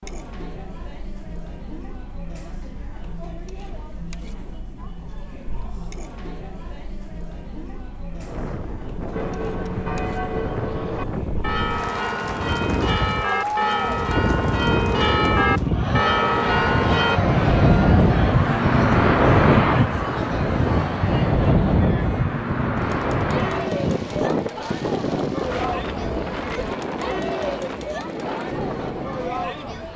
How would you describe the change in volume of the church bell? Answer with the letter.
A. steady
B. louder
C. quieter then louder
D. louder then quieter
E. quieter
B.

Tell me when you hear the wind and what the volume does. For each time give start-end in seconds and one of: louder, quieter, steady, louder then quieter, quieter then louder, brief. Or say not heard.
8.1-29.9 louder then quieter.